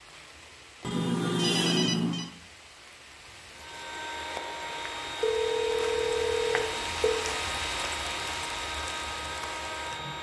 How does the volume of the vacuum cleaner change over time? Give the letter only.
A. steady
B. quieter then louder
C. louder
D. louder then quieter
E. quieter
A.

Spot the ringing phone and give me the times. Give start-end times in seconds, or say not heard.
0.8-2.3, 5.2-7.3.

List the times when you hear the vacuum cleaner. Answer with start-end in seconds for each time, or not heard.
3.5-10.1.